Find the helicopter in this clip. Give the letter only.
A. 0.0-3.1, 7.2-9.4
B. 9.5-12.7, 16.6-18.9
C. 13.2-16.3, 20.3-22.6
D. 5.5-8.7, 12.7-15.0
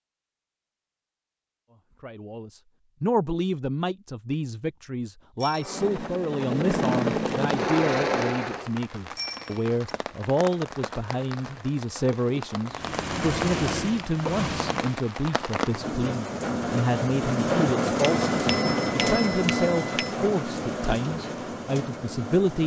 D.